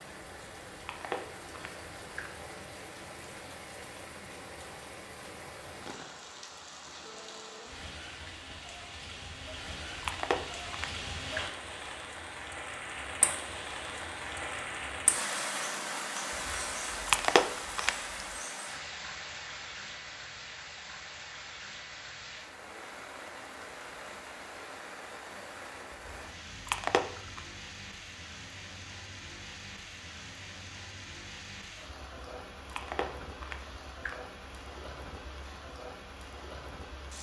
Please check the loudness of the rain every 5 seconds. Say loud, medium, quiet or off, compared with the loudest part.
medium, medium, loud, loud, medium, medium, medium, medium.